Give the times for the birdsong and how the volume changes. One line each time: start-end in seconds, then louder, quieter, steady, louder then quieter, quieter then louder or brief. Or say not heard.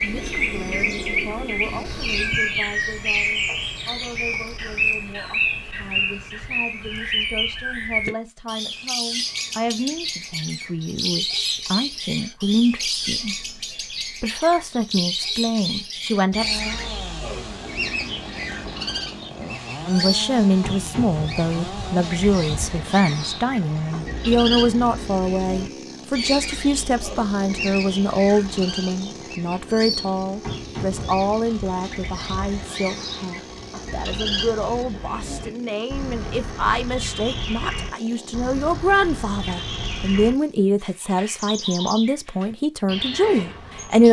0.0-44.0 quieter.